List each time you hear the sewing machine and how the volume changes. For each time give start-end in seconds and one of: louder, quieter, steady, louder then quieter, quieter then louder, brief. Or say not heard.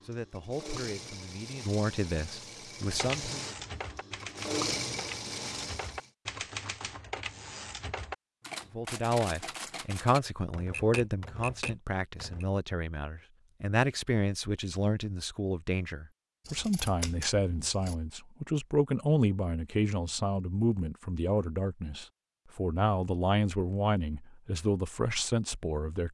0.0-6.1 louder.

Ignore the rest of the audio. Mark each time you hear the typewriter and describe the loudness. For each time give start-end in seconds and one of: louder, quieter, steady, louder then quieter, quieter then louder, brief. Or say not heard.
2.8-12.4 steady.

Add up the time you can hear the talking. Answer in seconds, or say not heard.
21 s.